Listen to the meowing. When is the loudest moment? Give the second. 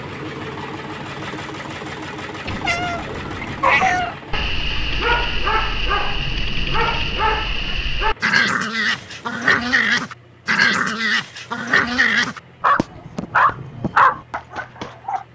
4 s.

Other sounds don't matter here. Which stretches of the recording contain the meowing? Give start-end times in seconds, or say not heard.
2.5-4.2.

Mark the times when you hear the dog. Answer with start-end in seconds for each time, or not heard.
3.6-15.2.